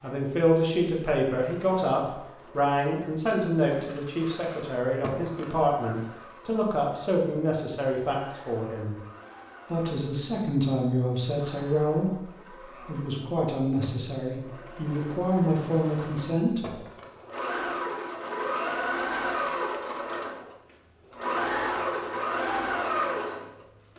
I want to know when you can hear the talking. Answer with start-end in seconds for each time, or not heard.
0.0-8.9, 9.7-16.8.